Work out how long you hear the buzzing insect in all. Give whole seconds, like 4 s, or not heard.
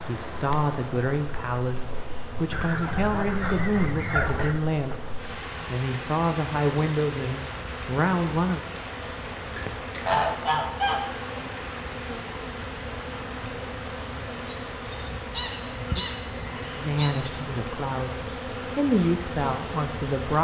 20 s.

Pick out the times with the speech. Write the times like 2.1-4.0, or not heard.
0.0-8.7, 16.8-20.3.